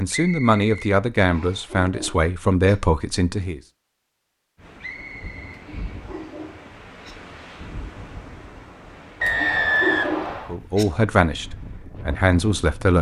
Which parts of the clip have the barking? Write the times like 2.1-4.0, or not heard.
1.1-2.8, 5.5-7.2, 9.2-10.8.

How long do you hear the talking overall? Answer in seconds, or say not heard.
6 s.